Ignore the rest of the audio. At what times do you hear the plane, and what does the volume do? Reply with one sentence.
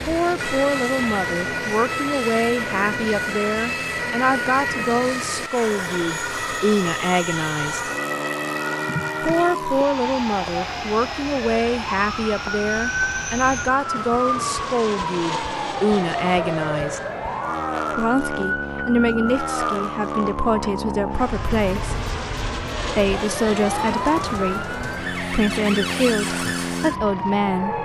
You can hear the plane from 0.0 to 27.8 s, at a steady volume.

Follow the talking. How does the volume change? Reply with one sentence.
The loudness of the talking stays about the same.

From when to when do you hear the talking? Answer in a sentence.
The talking can be heard from 0.1 to 7.8 s, from 9.2 to 17.0 s, from 17.9 to 22.0 s and from 22.9 to 27.8 s.